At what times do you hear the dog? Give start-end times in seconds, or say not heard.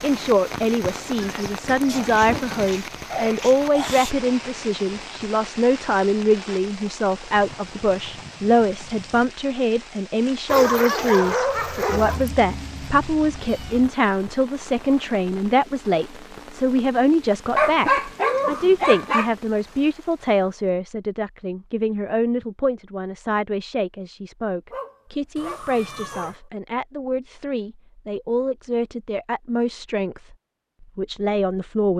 1.9-4.2, 10.4-12.2, 17.6-19.3, 24.7-26.4.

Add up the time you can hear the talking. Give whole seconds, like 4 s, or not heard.
32 s.